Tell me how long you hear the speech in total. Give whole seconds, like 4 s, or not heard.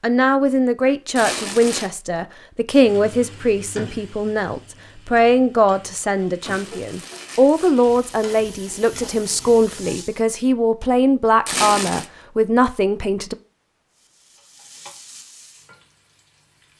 13 s.